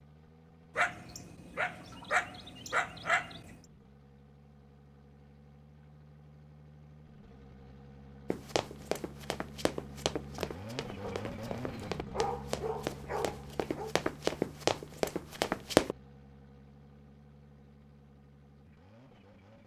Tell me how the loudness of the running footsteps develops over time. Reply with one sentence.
The loudness of the running footsteps goes up.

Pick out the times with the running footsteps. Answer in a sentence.
You can hear the running footsteps from 8.3 to 15.9 s.